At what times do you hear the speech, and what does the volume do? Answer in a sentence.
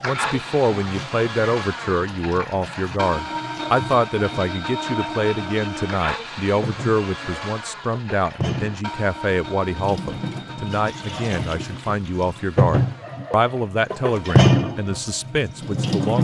The speech can be heard from 0.0 to 16.1 s, at a steady volume.